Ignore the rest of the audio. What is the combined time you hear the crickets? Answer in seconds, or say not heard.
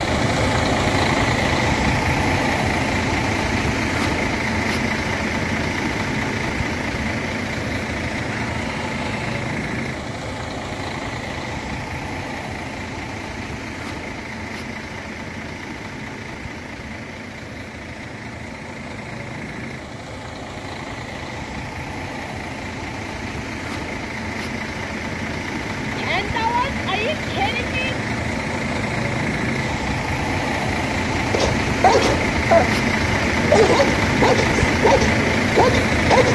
not heard.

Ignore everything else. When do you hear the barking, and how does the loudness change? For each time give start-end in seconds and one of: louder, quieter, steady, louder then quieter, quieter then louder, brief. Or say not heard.
31.3-36.3 steady.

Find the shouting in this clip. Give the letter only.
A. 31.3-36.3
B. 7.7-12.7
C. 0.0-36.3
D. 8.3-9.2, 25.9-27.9
D.